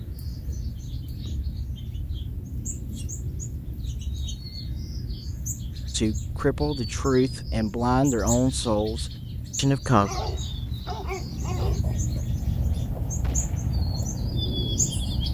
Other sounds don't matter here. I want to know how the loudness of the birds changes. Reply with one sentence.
The volume of the birds goes up.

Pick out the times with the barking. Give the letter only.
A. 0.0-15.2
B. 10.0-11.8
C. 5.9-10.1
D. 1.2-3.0
B.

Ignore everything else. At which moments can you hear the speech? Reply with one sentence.
The speech can be heard from 5.9 to 10.1 s.